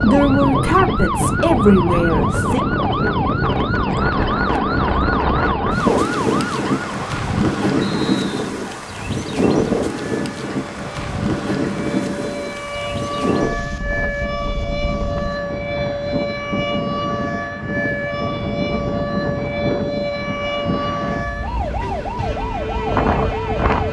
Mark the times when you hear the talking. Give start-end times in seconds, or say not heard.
0.0-2.6.